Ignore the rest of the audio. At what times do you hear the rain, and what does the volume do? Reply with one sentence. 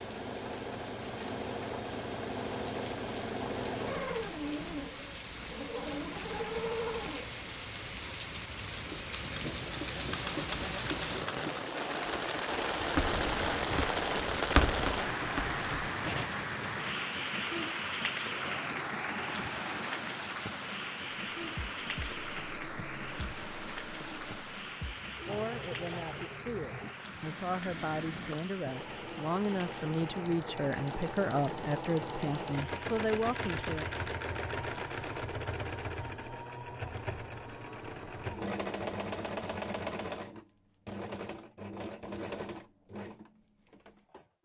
The rain can be heard from 0.0 to 35.3 s, getting louder then quieter.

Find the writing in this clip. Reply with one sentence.
You can hear the writing from 12.9 to 16.3 s.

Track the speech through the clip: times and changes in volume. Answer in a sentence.
The speech can be heard from 25.2 to 33.9 s, getting louder.